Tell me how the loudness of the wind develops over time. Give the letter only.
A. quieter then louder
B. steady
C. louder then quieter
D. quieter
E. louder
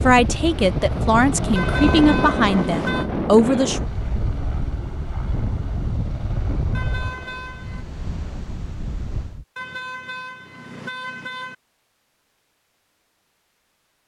D.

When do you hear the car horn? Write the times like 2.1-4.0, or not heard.
1.6-3.1, 6.7-7.8, 9.6-11.6.